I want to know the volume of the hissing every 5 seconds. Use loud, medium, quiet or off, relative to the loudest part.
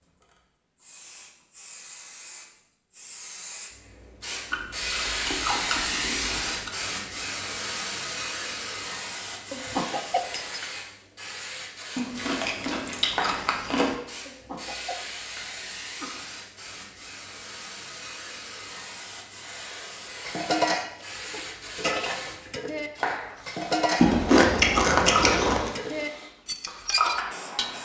medium, loud, medium, medium, medium, loud.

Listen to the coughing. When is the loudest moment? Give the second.
10 s.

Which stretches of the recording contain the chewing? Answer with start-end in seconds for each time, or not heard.
4.5-6.7, 11.9-13.9, 23.9-25.7.